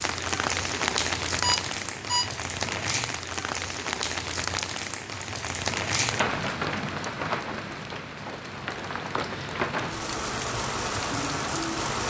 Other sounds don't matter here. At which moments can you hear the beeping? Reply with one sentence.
The beeping can be heard from 1.4 to 2.4 s.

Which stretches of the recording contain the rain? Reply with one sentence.
The rain can be heard from 0.0 to 12.0 s.